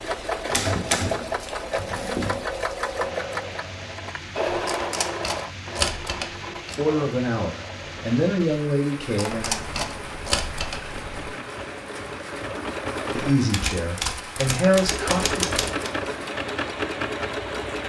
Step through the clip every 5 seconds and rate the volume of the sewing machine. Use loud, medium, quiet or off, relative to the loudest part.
loud, medium, medium, loud.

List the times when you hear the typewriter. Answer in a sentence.
You can hear the typewriter from 0.5 to 2.5 s, from 4.5 to 6.8 s, from 8.9 to 10.8 s and from 13.5 to 15.9 s.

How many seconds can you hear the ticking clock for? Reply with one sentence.
You can't hear the ticking clock here.